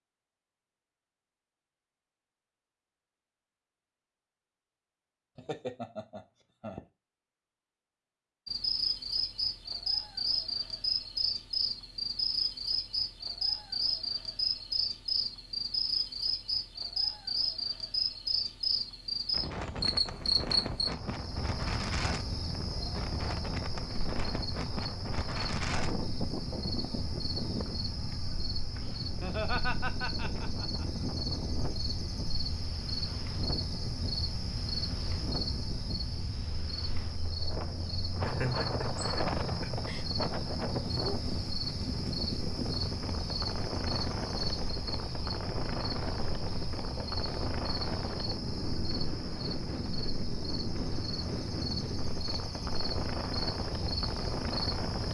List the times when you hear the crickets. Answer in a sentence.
You can hear the crickets from 8.4 to 55.0 s.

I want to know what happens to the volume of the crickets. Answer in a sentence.
The volume of the crickets goes down.